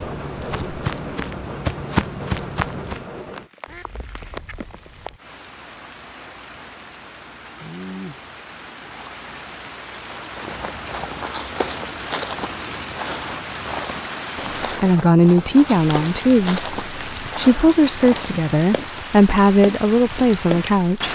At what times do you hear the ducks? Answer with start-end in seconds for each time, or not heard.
3.6-5.2.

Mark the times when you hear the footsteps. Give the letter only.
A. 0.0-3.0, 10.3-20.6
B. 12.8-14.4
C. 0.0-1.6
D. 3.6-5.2
A.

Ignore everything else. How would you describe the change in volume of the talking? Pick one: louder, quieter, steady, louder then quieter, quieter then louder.
steady.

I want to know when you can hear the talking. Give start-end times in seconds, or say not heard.
14.8-21.0.